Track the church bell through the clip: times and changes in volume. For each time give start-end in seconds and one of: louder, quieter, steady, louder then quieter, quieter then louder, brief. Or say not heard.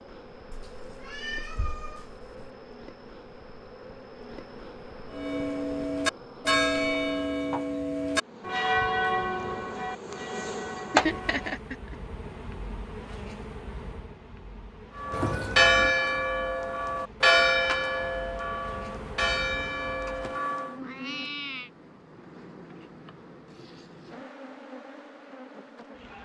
5.1-11.6 quieter
14.9-20.8 quieter.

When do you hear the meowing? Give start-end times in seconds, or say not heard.
0.5-2.5, 15.1-15.9, 20.1-21.7.